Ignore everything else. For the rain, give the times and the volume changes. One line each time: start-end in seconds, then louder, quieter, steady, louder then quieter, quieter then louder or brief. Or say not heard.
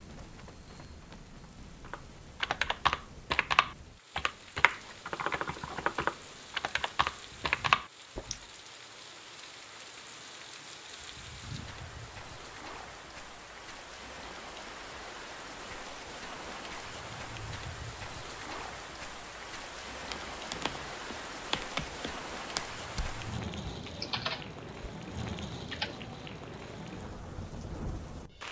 0.0-28.4 louder.